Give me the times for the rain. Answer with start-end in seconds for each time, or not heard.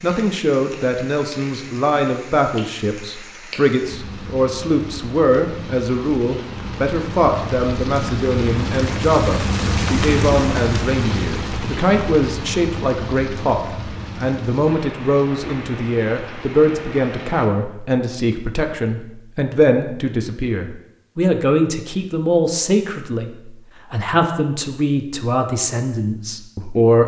0.0-17.5.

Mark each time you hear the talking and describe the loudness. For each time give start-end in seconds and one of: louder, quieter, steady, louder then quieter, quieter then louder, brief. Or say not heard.
0.0-27.0 steady.